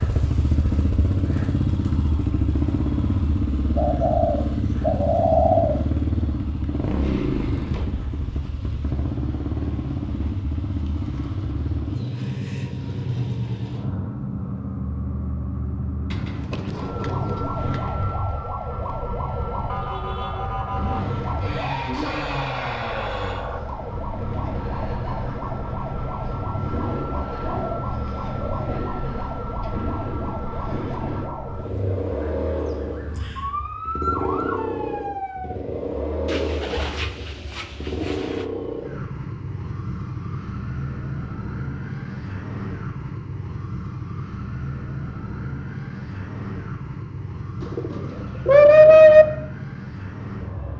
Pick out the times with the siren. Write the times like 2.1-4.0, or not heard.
16.7-35.5.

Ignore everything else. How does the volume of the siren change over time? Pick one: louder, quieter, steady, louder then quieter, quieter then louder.
steady.